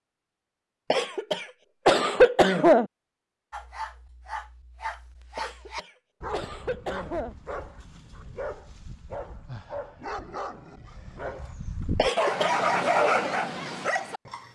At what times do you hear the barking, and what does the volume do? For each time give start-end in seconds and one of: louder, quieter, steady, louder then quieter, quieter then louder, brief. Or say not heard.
3.5-14.4 louder.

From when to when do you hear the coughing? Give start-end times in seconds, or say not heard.
0.9-2.9, 5.3-7.3, 11.9-12.6.